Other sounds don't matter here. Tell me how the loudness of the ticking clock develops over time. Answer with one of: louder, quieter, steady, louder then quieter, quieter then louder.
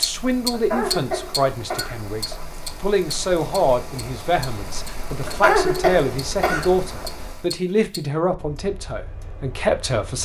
quieter.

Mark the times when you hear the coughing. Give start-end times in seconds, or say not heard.
0.5-2.5, 5.2-7.1.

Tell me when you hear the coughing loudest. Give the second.
6 s.